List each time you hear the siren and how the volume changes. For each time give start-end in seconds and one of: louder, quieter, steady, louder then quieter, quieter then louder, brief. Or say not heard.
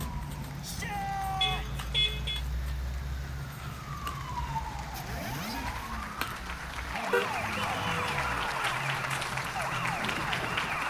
0.0-10.8 louder.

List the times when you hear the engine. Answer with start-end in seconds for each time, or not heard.
0.0-10.8.